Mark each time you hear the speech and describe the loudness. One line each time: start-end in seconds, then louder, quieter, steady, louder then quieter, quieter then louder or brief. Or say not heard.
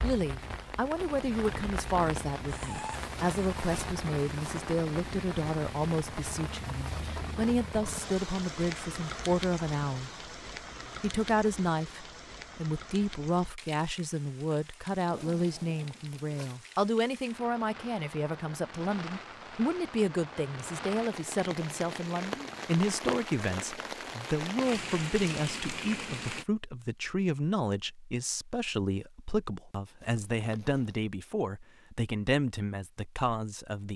0.0-10.1 steady
11.0-33.9 steady.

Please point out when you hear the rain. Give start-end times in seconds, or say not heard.
0.0-26.4.